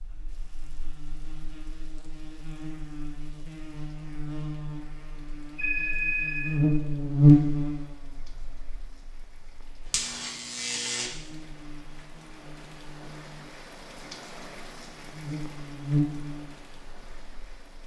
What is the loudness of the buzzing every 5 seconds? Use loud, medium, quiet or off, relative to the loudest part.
quiet, loud, quiet, medium.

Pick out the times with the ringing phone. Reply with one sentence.
You can hear the ringing phone from 5.2 to 6.7 s.